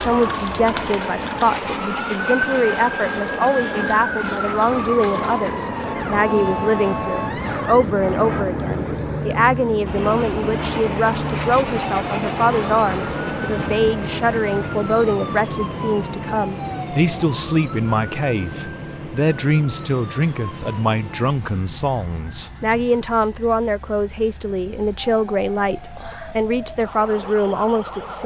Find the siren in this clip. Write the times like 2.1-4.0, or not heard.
0.0-28.2.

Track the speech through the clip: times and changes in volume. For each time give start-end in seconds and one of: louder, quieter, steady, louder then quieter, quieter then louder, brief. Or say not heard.
0.0-28.2 steady.